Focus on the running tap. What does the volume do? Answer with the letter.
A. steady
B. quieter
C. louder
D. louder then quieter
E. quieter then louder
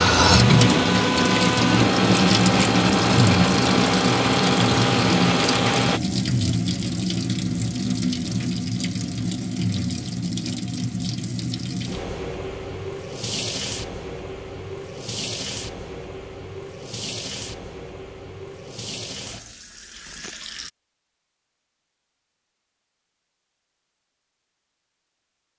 B.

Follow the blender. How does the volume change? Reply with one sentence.
The volume of the blender stays about the same.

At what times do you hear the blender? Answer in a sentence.
You can hear the blender from 0.0 to 6.0 s.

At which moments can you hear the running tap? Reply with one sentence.
The running tap can be heard from 0.0 to 20.7 s.